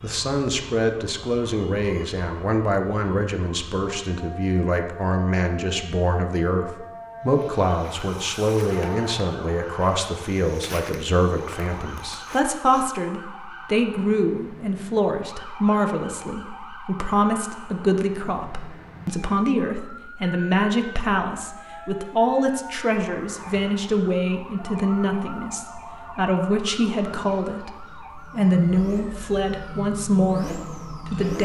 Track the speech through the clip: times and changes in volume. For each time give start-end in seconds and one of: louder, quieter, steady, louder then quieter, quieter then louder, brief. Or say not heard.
0.0-31.3 steady.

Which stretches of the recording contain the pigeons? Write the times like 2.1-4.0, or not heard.
not heard.